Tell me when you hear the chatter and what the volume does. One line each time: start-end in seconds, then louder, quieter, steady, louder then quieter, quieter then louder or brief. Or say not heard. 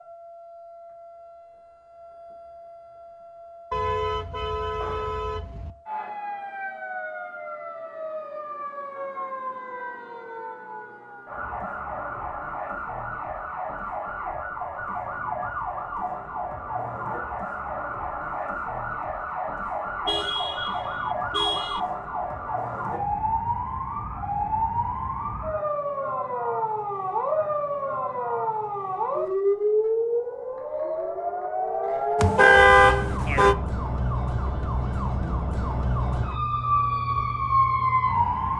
not heard.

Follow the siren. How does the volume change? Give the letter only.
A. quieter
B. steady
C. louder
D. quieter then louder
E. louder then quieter
C.